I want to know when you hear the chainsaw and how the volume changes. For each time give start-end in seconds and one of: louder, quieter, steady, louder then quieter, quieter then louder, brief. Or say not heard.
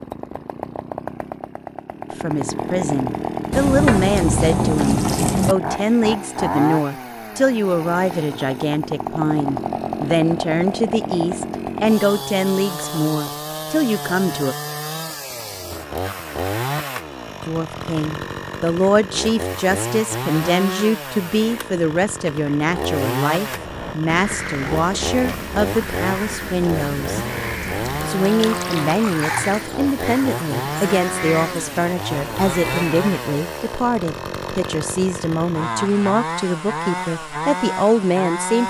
0.0-38.6 steady.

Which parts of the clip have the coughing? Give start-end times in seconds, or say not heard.
not heard.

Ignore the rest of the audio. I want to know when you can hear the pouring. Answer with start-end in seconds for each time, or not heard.
3.5-5.5, 28.2-29.6.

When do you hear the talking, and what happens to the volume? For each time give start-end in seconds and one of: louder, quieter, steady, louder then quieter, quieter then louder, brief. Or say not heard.
2.1-14.6 steady
17.4-27.2 steady
28.1-38.6 steady.